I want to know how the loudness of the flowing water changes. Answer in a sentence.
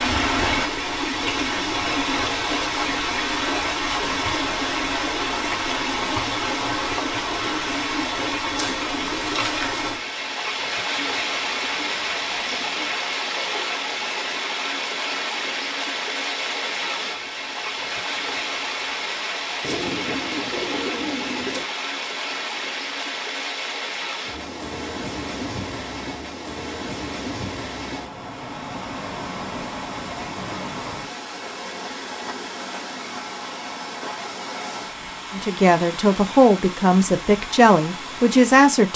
The volume of the flowing water goes down.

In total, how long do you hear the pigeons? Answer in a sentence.
The pigeons can be heard for 4 seconds in total.